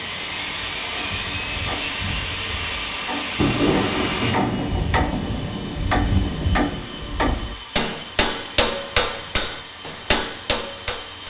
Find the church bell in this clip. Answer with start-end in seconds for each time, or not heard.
not heard.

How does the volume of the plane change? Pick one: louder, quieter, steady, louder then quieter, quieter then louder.
quieter.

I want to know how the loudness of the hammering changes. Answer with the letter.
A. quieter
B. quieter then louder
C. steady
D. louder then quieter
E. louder
E.